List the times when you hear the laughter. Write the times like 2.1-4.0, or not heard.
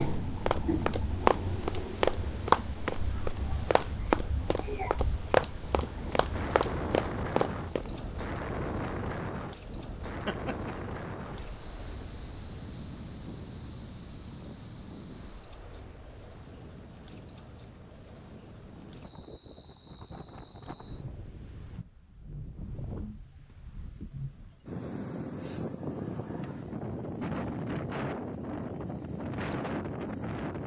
10.2-10.8.